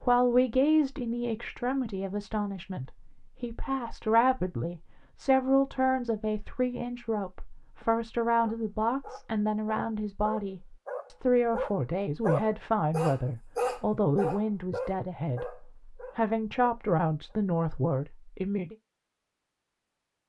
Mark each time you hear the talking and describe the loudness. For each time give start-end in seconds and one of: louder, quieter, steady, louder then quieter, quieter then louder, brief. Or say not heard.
0.0-18.8 steady.